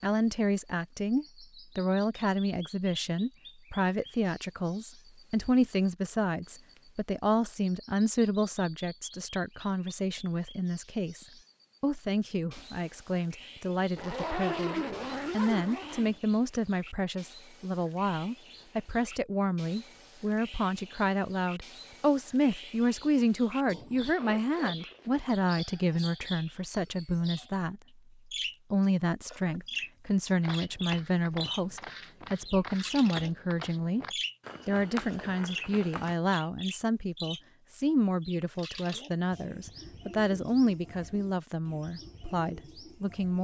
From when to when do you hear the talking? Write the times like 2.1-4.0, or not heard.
0.0-27.8, 28.7-34.0, 34.6-43.3.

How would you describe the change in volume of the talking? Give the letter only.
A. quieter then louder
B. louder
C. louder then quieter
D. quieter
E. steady
E.